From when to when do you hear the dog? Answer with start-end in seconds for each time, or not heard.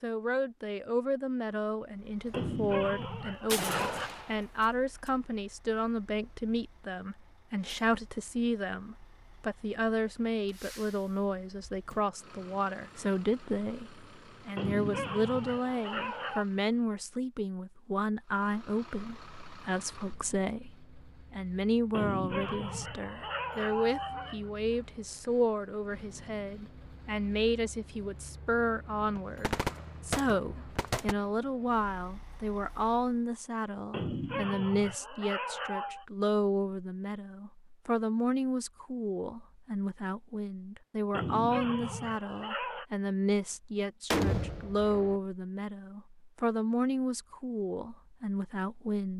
2.3-4.1, 14.6-16.4, 21.9-24.5, 33.9-36.0, 41.1-42.9.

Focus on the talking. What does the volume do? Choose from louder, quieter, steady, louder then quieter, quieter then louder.
steady.